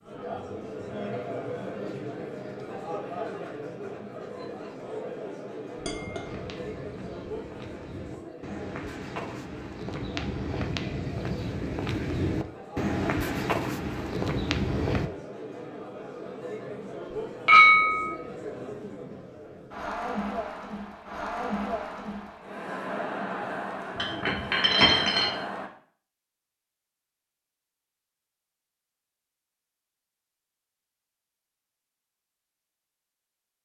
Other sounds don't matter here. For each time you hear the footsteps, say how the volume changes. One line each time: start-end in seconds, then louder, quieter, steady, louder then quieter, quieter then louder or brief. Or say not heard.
6.2-15.1 louder.